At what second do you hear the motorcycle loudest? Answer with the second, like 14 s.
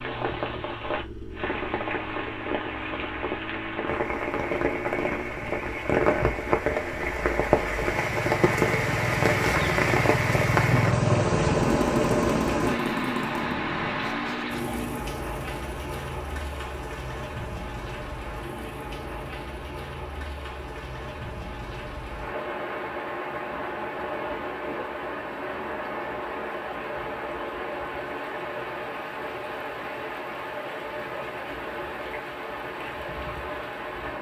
11 s.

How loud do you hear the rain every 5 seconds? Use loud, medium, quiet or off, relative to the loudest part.
medium, loud, loud, medium, medium, medium, medium.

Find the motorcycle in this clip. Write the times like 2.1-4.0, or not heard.
0.0-15.1.